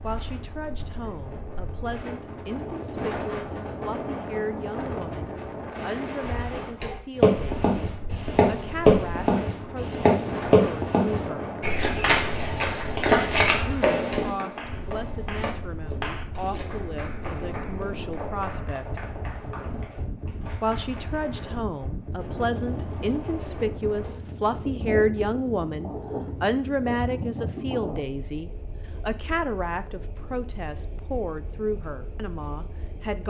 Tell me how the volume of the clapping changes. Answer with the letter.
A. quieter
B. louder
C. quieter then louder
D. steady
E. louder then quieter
A.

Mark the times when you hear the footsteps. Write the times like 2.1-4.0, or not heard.
7.2-16.6.